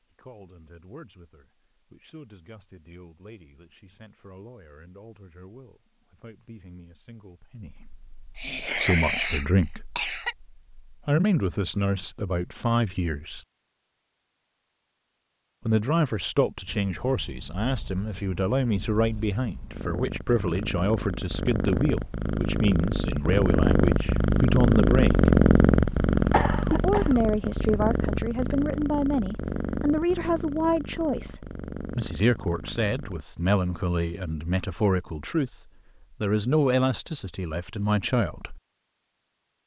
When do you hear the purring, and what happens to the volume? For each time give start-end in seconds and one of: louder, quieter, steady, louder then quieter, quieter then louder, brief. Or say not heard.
16.6-33.2 louder then quieter.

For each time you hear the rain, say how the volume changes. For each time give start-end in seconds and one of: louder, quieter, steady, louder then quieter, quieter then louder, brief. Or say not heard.
not heard.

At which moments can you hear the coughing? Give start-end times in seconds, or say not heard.
8.3-10.3, 26.3-27.1.